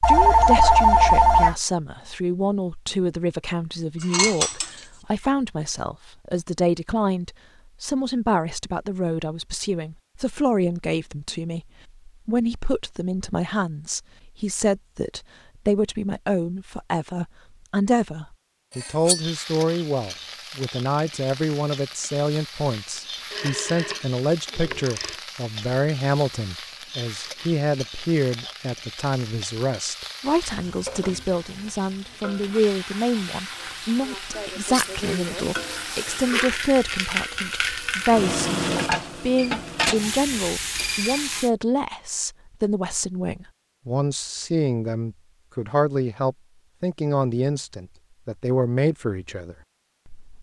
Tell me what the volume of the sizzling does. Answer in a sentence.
The volume of the sizzling goes up.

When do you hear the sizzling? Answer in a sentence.
The sizzling can be heard from 19.1 to 41.5 s.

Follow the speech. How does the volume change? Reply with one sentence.
The loudness of the speech stays about the same.